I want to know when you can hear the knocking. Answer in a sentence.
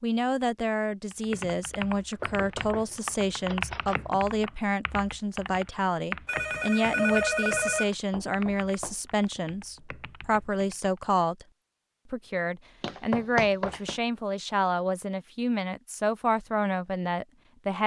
The knocking can be heard from 2.2 to 4.0 s, from 8.1 to 9.2 s and from 12.8 to 14.0 s.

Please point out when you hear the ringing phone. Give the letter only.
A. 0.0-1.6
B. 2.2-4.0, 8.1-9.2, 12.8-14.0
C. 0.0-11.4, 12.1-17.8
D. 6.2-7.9
D.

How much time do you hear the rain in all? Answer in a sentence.
The rain can't be heard in this clip.